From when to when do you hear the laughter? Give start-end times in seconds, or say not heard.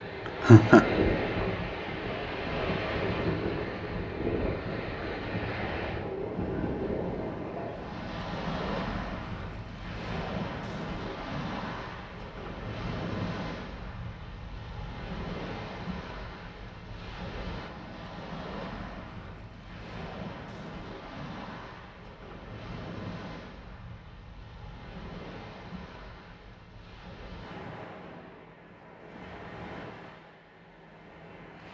0.2-0.8.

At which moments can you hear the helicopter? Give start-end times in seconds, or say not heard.
not heard.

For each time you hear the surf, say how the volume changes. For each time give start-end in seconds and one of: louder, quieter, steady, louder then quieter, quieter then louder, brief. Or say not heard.
0.0-31.6 quieter.